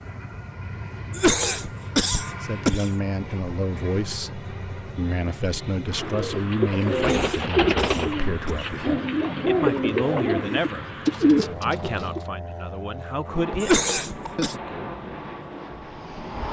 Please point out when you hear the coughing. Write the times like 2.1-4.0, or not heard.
1.1-2.9, 7.0-8.7, 13.6-14.6.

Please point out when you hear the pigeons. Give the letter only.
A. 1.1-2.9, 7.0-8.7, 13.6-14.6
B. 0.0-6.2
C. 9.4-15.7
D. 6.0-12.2
D.